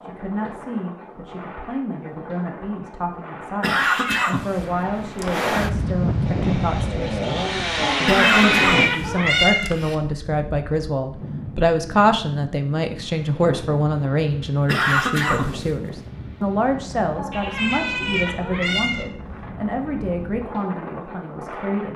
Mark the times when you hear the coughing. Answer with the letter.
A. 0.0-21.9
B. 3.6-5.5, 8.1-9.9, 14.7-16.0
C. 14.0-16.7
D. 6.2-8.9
B.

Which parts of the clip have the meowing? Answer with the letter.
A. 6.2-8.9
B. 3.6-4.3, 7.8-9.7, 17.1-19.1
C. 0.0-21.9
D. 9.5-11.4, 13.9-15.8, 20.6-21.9
B.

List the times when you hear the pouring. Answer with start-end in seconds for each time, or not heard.
not heard.